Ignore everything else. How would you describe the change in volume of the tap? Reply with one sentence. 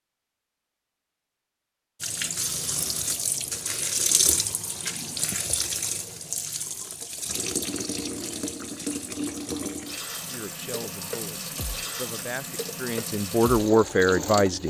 The volume of the tap goes down.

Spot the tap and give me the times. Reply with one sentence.
The tap can be heard from 2.0 to 14.6 s.